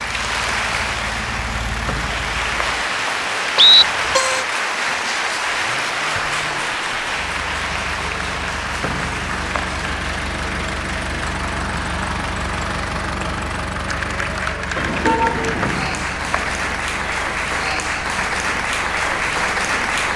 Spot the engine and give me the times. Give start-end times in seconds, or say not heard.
0.0-2.6, 5.5-20.1.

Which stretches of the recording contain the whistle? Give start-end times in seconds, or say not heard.
1.9-3.9, 8.8-9.7, 15.6-16.5.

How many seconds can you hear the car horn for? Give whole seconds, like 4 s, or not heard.
2 s.